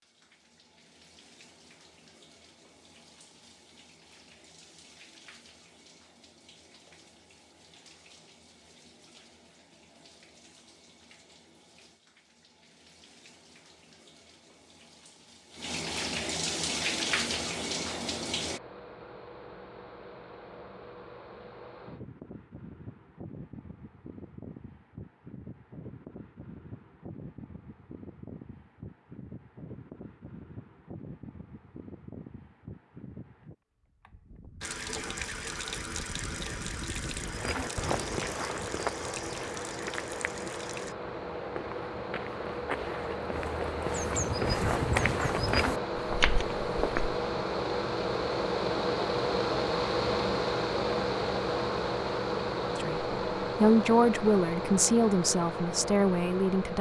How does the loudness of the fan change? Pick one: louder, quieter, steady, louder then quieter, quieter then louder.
louder.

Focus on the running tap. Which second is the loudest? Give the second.
17 s.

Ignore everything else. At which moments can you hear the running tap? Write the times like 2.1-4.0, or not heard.
0.0-18.6, 34.6-41.0.